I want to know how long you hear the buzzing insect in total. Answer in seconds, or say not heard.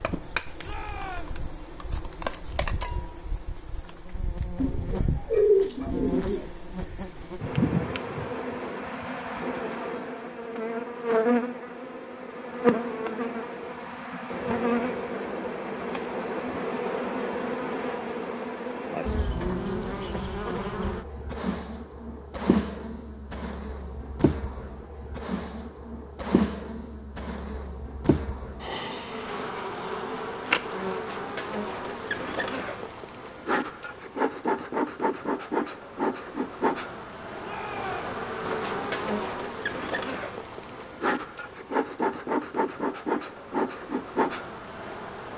45 s.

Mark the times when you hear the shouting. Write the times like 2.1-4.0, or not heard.
0.6-1.4, 37.4-38.1.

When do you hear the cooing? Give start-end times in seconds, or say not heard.
4.5-6.5.